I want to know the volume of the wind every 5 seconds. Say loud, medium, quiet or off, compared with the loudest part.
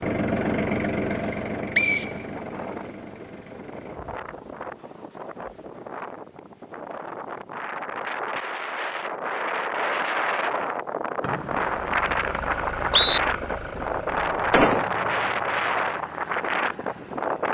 quiet, medium, loud, loud.